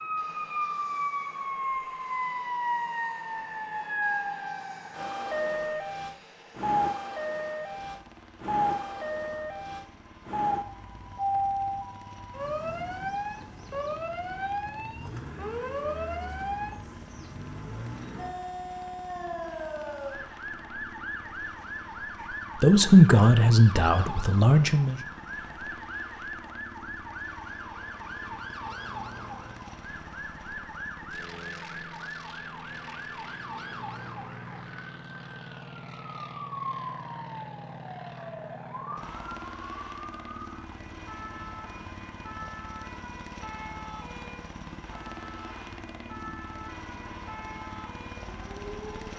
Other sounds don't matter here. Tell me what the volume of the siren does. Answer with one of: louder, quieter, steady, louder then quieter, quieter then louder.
quieter.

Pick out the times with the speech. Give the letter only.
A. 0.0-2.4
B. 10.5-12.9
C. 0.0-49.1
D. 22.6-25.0
D.